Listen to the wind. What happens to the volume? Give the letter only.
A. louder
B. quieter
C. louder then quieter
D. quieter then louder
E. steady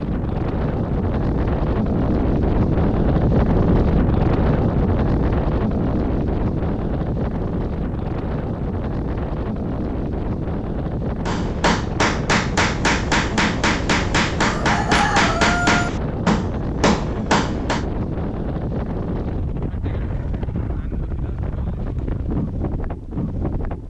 B.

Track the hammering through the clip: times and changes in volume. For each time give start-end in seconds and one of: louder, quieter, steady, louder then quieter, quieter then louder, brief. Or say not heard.
11.2-17.9 steady.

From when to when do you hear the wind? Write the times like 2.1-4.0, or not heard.
0.0-23.8.